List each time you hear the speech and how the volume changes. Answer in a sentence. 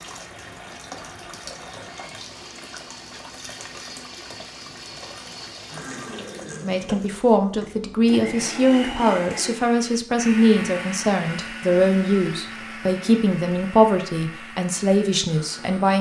You can hear the speech from 6.6 to 15.9 s, at a steady volume.